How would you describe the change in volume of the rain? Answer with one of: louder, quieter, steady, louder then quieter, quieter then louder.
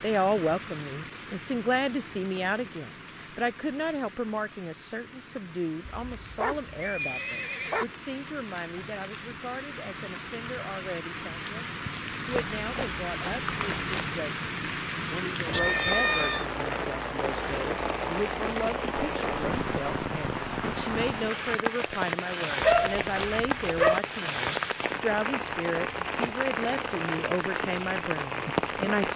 louder.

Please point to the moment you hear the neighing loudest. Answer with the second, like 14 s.
16 s.